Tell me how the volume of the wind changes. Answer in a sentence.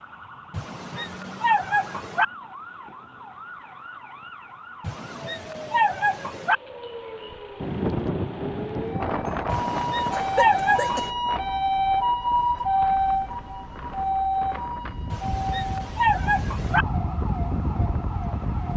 The loudness of the wind goes down, then up.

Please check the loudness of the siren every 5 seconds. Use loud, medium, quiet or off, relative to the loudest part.
quiet, medium, loud, medium.